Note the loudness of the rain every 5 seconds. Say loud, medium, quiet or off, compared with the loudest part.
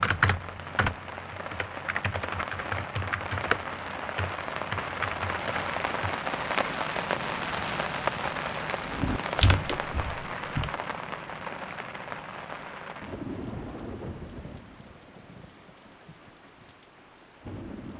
medium, loud, medium, quiet.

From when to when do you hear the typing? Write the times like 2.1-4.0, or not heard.
0.0-6.2, 8.8-10.8.